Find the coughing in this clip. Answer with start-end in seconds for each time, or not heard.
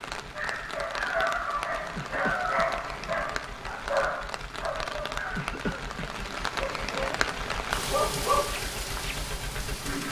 1.9-2.7, 5.3-6.1.